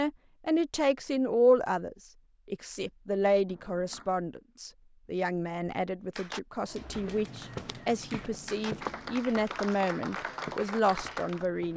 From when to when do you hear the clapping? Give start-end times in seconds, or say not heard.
6.2-11.4.